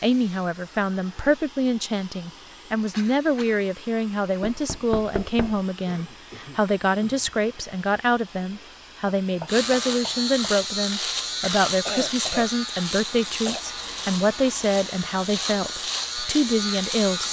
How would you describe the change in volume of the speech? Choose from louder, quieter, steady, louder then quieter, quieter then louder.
steady.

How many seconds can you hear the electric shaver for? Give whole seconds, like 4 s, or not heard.
8 s.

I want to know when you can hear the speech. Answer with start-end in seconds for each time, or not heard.
0.0-17.2.